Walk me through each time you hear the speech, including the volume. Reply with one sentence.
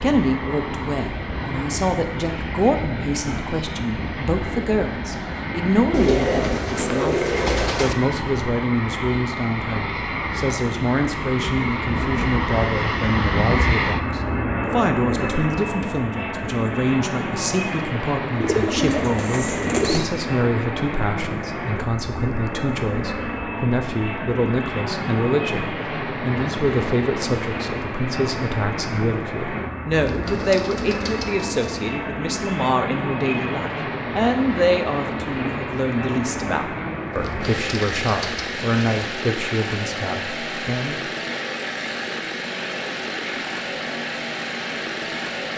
The speech can be heard from 0.0 to 41.0 s, at a steady volume.